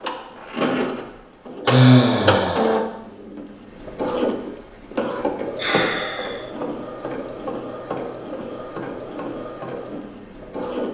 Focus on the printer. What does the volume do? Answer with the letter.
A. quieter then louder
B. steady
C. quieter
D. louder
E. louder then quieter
C.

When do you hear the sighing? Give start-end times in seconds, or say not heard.
1.6-2.8, 5.5-6.4.